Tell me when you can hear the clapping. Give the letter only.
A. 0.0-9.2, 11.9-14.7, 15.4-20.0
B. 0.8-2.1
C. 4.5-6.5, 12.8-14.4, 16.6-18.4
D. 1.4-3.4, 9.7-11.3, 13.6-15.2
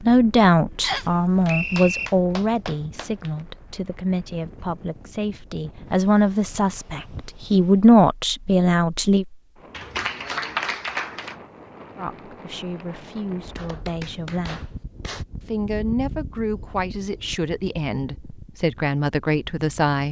D.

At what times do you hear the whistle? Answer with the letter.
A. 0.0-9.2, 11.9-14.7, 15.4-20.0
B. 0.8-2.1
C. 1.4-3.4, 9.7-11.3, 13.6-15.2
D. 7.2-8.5
B.